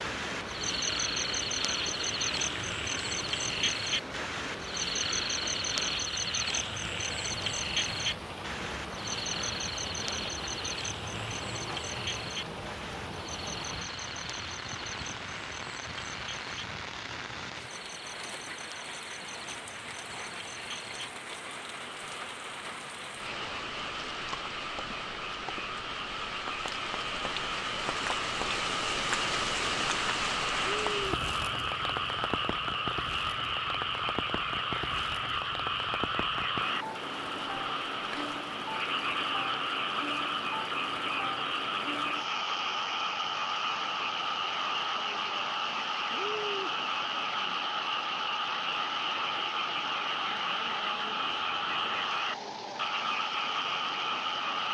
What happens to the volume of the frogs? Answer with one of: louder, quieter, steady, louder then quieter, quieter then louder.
quieter then louder.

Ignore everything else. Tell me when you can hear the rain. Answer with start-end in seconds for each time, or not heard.
0.0-54.7.